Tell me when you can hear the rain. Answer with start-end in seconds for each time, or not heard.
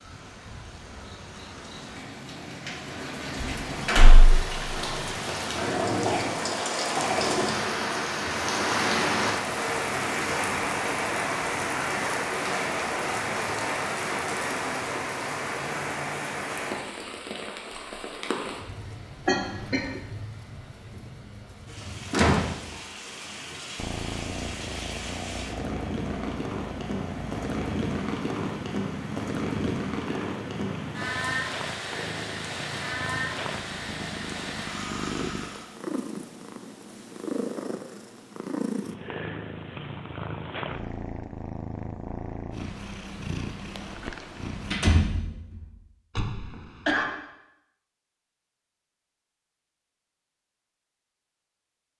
0.0-35.8.